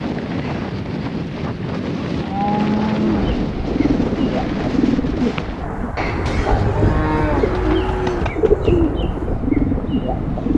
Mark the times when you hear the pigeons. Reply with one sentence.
The pigeons can be heard from 3.0 to 10.5 s.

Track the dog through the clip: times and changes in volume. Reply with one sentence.
You can't hear the dog here.